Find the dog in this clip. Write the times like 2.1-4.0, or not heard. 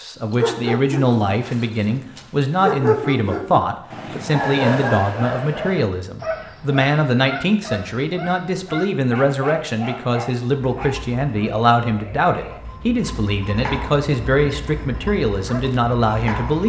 0.3-11.1.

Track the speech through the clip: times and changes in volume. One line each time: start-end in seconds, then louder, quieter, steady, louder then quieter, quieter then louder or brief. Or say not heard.
0.0-16.6 steady.